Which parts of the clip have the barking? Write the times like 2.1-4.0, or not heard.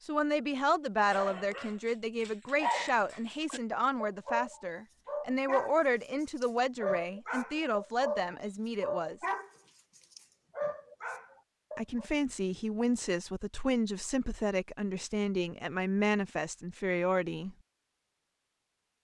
1.0-12.1.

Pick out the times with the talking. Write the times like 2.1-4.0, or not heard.
0.0-9.2, 11.8-17.6.